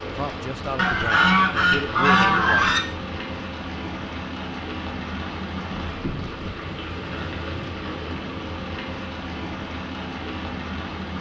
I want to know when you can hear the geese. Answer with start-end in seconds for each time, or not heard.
0.8-2.8, 5.7-7.7.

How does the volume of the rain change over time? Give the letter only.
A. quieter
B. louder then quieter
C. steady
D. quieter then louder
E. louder
C.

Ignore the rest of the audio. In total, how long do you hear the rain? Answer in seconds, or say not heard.
11 s.